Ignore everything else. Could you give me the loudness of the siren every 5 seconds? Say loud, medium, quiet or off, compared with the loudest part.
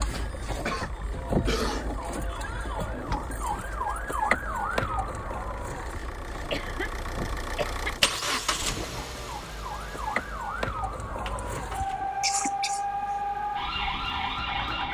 loud, medium, loud.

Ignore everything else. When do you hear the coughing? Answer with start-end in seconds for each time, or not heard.
0.1-1.9, 6.5-8.2, 11.3-13.1.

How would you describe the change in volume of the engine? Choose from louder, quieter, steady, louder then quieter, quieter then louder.
louder then quieter.